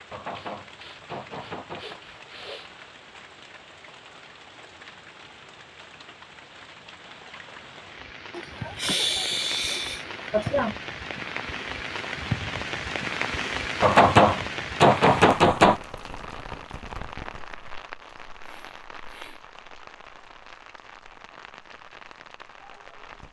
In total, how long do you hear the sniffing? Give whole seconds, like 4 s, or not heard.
6 s.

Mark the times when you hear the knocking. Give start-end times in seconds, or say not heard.
0.1-2.0, 13.8-15.8.